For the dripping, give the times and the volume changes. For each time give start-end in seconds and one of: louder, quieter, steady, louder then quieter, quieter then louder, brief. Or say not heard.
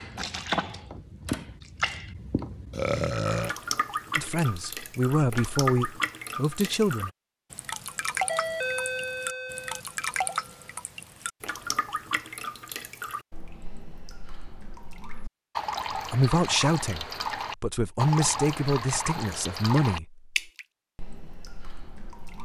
0.0-22.4 steady.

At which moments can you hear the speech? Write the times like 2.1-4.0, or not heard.
4.2-7.1, 15.9-20.2.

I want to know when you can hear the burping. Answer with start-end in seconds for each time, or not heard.
2.7-3.5.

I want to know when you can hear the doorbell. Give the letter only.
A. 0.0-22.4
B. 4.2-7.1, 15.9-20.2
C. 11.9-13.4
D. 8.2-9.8
D.